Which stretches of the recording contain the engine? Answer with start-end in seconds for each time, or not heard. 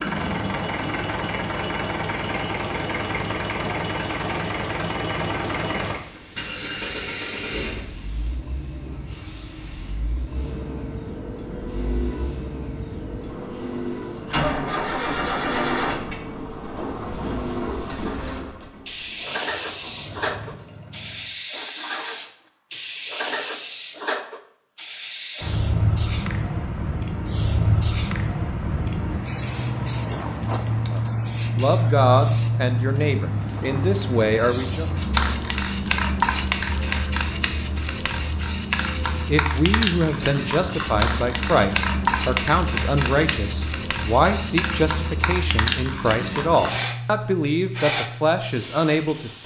0.0-21.4.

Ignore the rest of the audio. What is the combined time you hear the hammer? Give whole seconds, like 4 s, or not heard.
not heard.